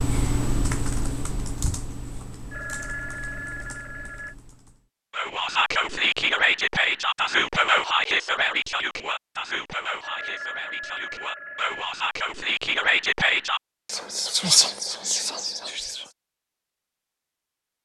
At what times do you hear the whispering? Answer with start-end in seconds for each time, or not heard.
5.1-16.1.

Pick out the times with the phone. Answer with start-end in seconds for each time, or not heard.
2.5-4.3, 10.0-11.8.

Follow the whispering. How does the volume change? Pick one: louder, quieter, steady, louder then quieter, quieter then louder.
quieter then louder.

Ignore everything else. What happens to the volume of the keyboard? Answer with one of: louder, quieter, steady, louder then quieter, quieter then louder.
quieter.